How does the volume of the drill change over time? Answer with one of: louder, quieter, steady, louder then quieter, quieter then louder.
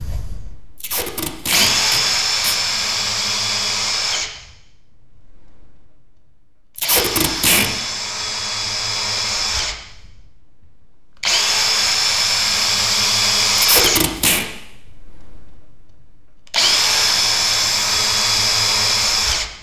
quieter then louder.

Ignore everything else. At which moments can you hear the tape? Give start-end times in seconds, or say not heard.
0.8-2.5, 6.8-7.7, 13.6-14.4.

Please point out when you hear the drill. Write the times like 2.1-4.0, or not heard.
0.0-19.5.